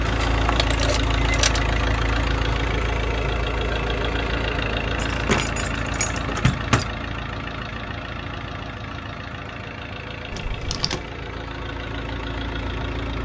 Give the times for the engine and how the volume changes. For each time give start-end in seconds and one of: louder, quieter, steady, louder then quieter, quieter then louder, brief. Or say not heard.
0.0-13.2 quieter.